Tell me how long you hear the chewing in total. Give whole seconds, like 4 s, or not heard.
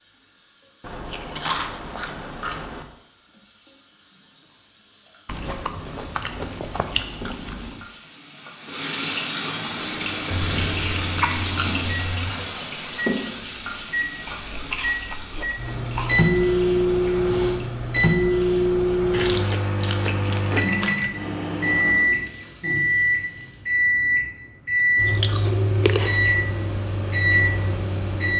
12 s.